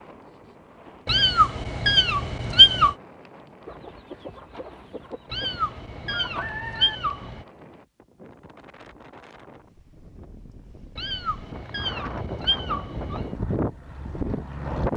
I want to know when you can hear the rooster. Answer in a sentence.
You can hear the rooster from 3.6 to 7.0 s.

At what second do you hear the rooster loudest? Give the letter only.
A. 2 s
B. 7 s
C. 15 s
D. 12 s
B.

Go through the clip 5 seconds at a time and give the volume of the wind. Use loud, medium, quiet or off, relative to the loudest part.
quiet, quiet, loud.